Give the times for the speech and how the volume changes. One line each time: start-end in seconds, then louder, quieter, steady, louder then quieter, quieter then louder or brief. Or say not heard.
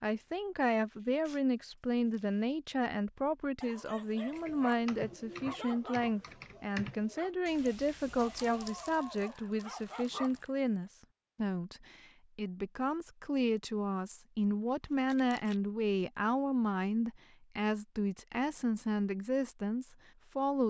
0.0-20.6 steady.